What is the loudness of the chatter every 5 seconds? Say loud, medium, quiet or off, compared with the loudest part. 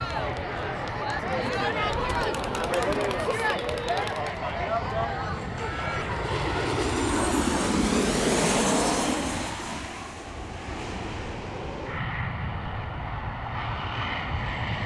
loud, medium, off.